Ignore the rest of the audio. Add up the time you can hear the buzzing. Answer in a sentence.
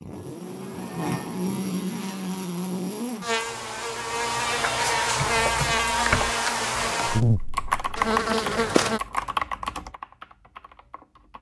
The buzzing can be heard for 9 seconds in total.